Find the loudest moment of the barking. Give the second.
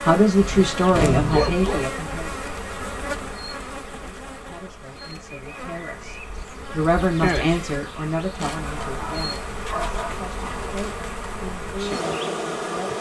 1 s.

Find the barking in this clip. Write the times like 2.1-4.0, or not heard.
0.4-1.9, 8.8-10.2.